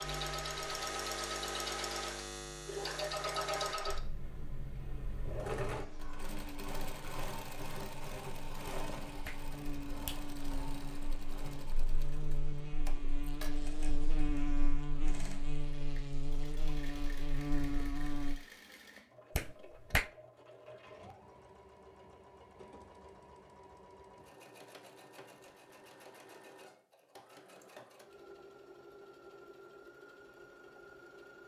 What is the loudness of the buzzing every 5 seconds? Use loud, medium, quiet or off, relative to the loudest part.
medium, medium, loud, loud, off, off, off.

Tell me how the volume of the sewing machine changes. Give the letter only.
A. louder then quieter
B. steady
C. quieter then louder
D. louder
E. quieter
E.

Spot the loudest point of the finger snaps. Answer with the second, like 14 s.
20 s.